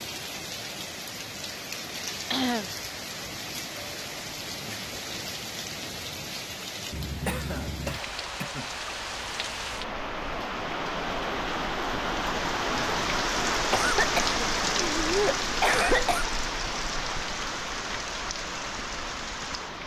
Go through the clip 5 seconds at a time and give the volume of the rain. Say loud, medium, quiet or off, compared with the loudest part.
medium, medium, loud, loud.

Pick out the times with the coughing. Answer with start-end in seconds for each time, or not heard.
2.3-2.7, 7.2-8.7, 13.7-16.3.